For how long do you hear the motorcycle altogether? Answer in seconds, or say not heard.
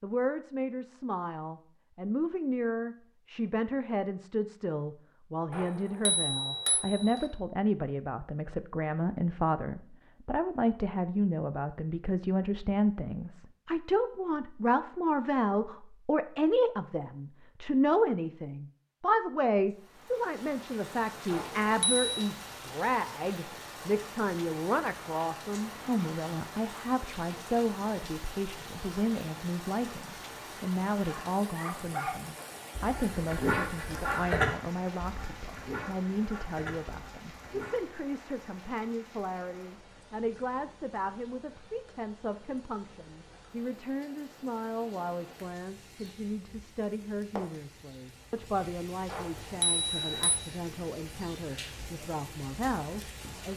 not heard.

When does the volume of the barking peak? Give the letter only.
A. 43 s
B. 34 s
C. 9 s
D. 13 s
B.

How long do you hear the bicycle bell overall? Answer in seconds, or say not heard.
4 s.